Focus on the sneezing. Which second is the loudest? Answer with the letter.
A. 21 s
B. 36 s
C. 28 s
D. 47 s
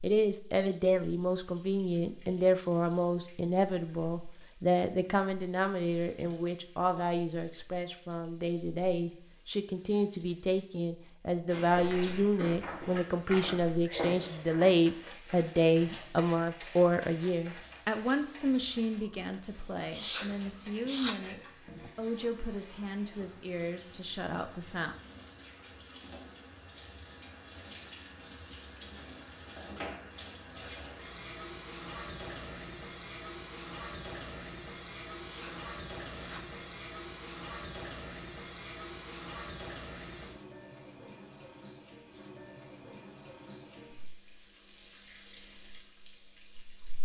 A.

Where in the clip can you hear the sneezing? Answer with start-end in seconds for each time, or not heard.
19.9-21.9, 35.2-36.5.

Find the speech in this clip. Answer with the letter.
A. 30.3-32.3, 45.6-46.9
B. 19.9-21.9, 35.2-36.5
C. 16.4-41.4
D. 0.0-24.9
D.